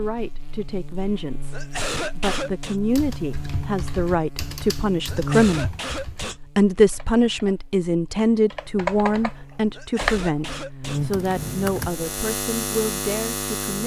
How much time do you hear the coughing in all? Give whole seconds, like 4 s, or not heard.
4 s.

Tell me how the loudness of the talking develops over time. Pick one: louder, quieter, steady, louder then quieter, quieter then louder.
louder then quieter.